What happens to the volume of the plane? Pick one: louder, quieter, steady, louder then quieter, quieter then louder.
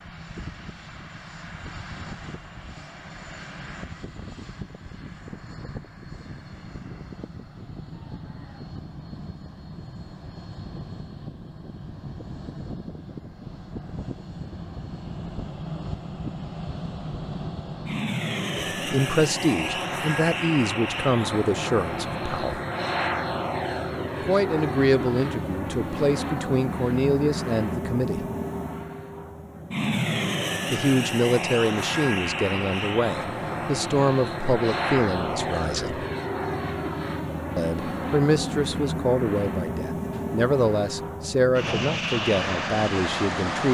louder.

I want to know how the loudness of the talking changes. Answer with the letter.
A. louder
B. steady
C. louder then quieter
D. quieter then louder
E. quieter
B.